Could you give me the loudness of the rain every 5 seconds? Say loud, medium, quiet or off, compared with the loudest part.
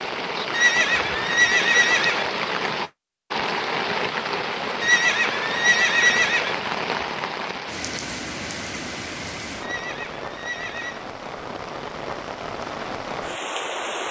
loud, loud, medium.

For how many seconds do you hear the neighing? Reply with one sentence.
The neighing can be heard for 5 seconds in total.